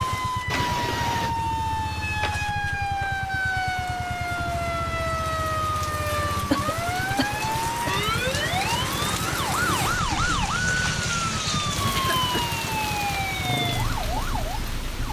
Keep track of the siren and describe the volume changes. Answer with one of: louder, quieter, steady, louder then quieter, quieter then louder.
steady.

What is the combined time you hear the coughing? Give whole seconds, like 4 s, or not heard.
3 s.